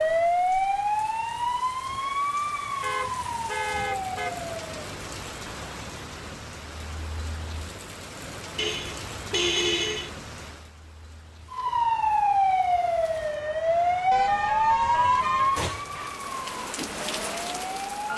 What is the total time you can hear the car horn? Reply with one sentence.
The car horn can be heard for 5 seconds in total.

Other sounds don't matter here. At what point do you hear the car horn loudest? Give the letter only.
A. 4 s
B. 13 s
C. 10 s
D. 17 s
C.